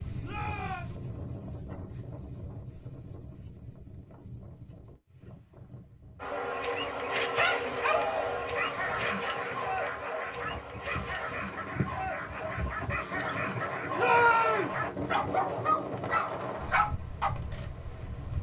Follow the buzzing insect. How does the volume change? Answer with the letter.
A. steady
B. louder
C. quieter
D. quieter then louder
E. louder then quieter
C.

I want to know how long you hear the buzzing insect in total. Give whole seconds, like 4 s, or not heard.
12 s.